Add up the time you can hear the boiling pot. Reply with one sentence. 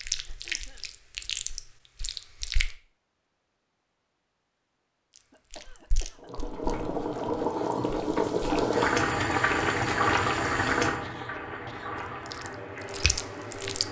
You can hear the boiling pot for 8 seconds altogether.